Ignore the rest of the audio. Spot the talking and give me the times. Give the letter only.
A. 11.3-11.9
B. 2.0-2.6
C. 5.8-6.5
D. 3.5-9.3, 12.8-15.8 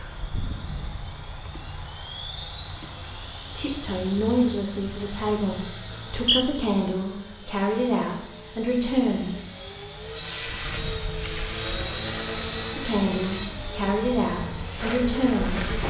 D.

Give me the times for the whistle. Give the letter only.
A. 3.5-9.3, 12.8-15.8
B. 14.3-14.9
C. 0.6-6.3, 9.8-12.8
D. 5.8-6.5
D.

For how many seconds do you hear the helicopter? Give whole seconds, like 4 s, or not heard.
16 s.